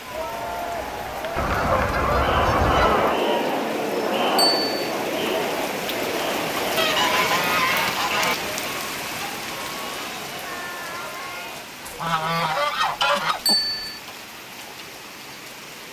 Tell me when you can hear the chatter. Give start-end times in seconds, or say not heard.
0.0-11.8.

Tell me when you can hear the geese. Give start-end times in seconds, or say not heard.
1.4-3.2, 6.8-8.3, 11.8-13.9.